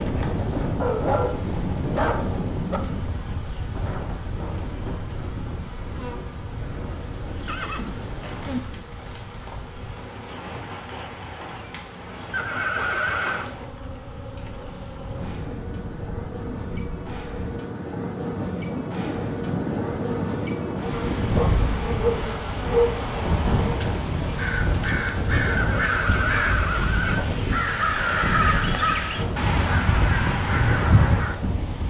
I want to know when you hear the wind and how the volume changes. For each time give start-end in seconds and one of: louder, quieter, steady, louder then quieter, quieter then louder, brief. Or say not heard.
0.0-31.8 quieter then louder.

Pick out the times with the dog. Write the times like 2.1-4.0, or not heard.
0.8-2.8, 21.3-22.9.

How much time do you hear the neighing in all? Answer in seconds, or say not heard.
4 s.